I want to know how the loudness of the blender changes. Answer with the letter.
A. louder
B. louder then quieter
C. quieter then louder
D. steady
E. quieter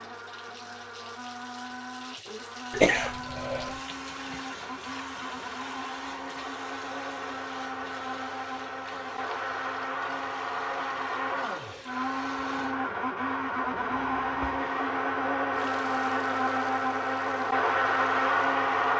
A.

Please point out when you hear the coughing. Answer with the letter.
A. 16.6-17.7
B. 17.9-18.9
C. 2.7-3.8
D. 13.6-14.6
C.